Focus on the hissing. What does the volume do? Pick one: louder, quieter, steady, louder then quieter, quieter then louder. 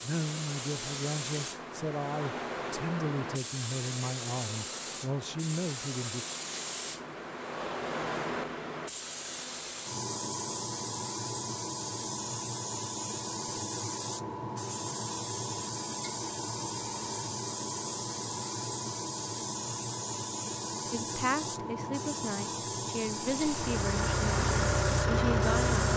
steady.